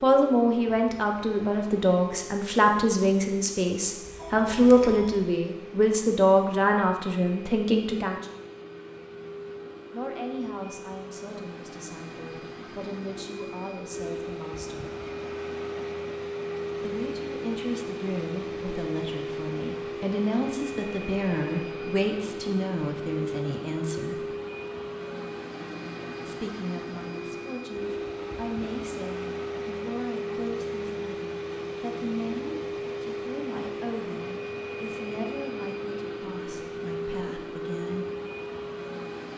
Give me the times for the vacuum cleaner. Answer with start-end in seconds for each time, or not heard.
0.0-39.3.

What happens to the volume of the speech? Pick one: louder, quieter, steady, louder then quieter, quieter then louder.
quieter.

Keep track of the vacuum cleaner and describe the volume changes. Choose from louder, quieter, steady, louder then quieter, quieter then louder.
louder.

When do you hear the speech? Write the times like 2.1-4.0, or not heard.
0.0-8.2, 9.9-14.9, 16.8-24.2, 26.2-38.0.